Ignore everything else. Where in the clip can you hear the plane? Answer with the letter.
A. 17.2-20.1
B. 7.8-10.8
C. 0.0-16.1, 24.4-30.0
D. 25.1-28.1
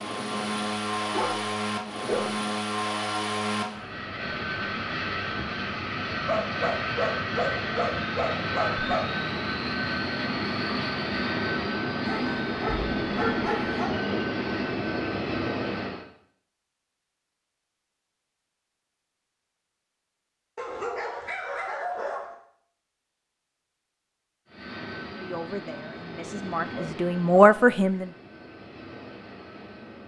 C.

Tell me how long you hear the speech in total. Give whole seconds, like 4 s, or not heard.
3 s.